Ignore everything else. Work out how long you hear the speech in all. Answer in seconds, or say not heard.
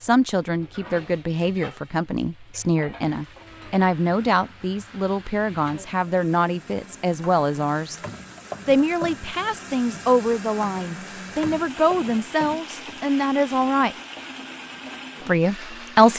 14 s.